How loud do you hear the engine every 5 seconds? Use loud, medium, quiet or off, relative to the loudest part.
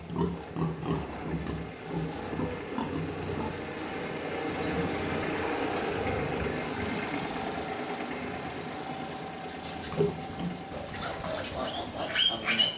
loud, loud, medium.